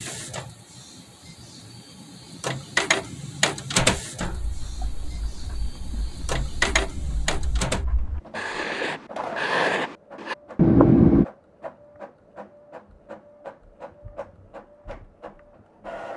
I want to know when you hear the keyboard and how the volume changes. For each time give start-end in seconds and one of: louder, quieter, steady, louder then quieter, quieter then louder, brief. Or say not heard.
not heard.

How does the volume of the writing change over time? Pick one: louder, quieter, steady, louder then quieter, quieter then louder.
louder.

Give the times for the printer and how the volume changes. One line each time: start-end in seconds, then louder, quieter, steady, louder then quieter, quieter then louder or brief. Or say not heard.
0.0-16.1 quieter.